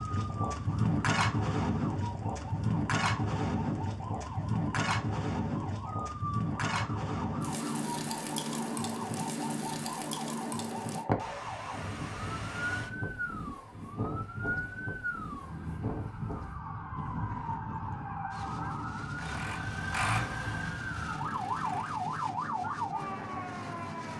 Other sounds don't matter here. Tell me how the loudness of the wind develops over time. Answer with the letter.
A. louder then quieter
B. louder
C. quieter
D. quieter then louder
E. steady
C.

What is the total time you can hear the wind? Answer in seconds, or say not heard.
24 s.